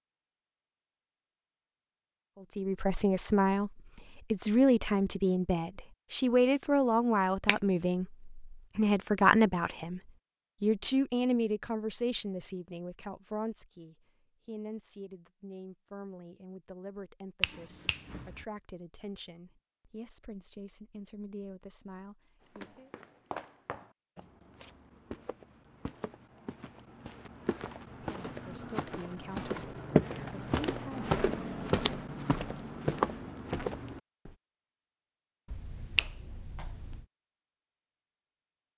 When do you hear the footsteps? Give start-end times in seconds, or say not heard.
22.6-34.4.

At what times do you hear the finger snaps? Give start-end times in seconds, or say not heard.
17.4-18.4, 35.5-37.0.